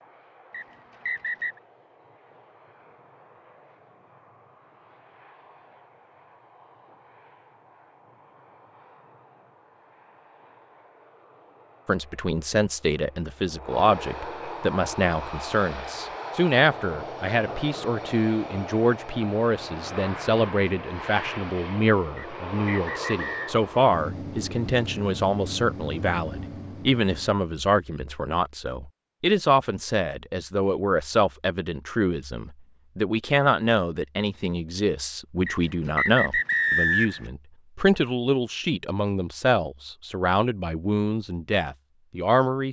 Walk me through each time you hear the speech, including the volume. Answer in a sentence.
You can hear the speech from 11.8 to 42.6 s, at a steady volume.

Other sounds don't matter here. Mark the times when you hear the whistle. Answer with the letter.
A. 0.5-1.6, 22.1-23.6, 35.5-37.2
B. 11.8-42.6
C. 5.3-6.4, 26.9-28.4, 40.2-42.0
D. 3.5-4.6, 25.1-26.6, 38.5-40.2
A.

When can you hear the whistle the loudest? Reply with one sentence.
The volume of the whistle peaks at 37 seconds.